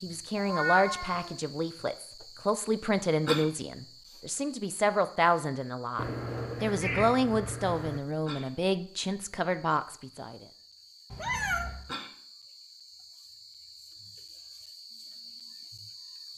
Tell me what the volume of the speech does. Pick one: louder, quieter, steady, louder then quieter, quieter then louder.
steady.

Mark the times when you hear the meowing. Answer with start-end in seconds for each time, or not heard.
0.3-1.4, 6.0-8.0, 11.1-11.8.